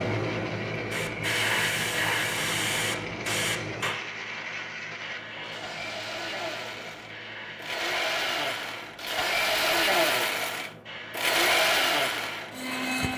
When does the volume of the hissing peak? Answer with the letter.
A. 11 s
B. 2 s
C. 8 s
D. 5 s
B.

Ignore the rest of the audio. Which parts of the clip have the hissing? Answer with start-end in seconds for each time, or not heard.
0.0-13.1.